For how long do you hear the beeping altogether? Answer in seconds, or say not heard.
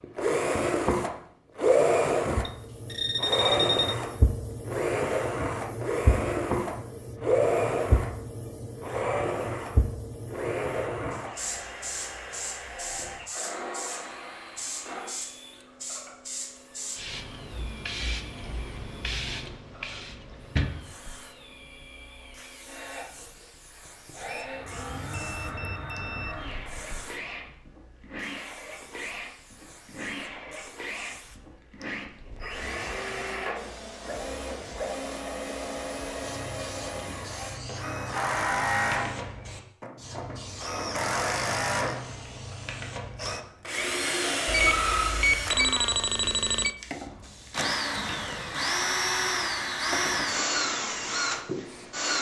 6 s.